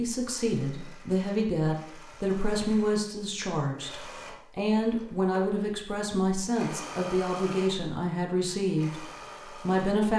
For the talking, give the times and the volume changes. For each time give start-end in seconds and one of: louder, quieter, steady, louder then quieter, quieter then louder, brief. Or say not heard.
0.0-10.1 steady.